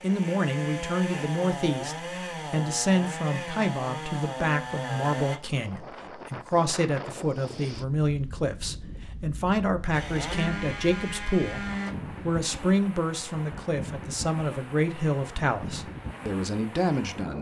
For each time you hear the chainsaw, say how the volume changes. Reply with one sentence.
You can hear the chainsaw from 0.0 to 5.4 s, at a steady volume; and briefly from 9.9 to 11.9 s.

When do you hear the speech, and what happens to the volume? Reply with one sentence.
You can hear the speech from 0.0 to 17.3 s, at a steady volume.